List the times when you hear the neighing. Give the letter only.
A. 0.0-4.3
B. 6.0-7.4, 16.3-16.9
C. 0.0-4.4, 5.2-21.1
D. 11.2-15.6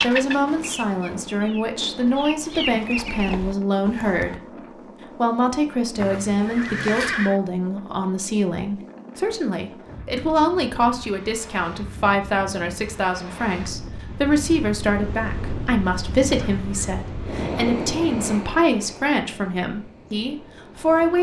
B.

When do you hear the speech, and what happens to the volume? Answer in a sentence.
The speech can be heard from 0.0 to 4.4 s, at a steady volume; and from 5.2 to 21.1 s, at a steady volume.